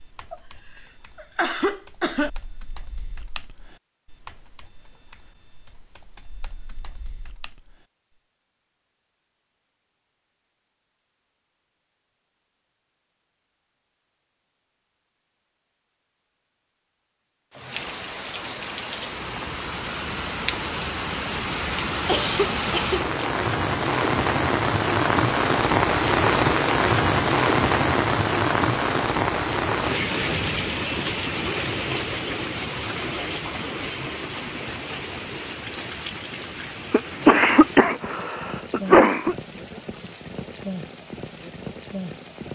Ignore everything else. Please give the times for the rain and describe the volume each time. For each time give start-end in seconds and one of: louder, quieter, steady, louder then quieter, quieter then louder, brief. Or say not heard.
17.5-42.5 louder then quieter.